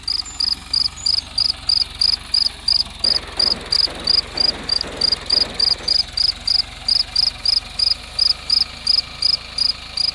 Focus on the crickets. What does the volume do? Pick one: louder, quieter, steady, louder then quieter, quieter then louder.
steady.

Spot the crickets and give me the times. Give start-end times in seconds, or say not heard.
0.1-10.0.